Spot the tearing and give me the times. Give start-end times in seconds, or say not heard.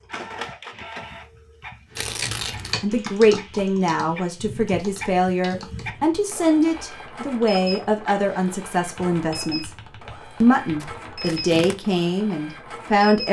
1.9-2.8, 10.8-11.8.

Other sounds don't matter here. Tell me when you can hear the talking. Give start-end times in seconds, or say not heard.
2.8-9.7, 10.4-13.2.